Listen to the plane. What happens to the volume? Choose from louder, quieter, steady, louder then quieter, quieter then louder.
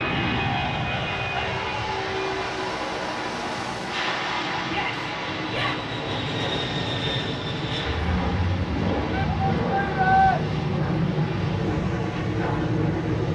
quieter then louder.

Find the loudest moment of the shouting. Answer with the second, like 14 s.
10 s.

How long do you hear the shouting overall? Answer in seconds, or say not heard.
3 s.